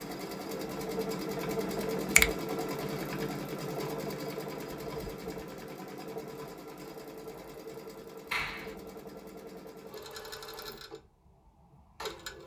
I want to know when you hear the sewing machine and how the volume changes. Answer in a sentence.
You can hear the sewing machine from 0.0 to 12.4 s, getting quieter.